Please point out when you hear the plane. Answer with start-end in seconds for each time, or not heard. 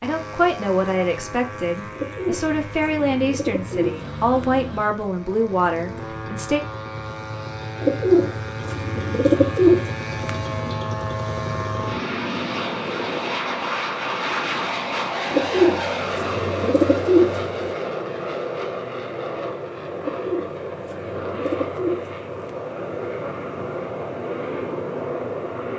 0.0-25.7.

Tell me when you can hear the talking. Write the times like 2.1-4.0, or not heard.
0.0-6.6.